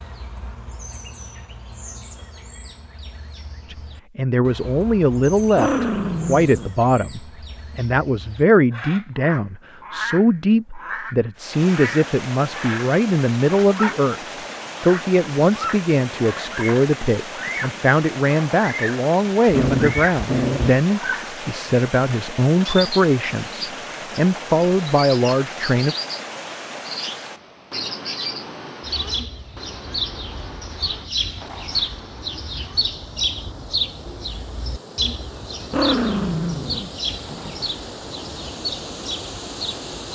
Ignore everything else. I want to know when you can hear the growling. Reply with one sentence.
You can hear the growling from 5.5 to 6.8 s, from 19.4 to 20.8 s and from 35.6 to 37.6 s.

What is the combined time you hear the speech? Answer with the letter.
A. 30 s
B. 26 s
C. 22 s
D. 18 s
C.